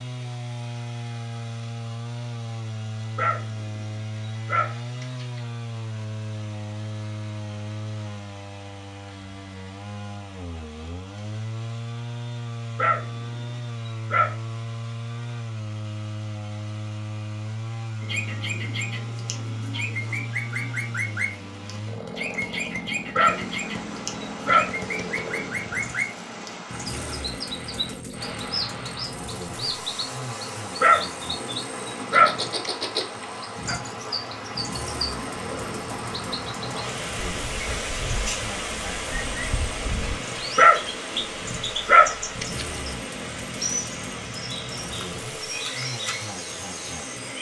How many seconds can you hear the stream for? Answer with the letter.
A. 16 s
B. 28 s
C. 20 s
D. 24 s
D.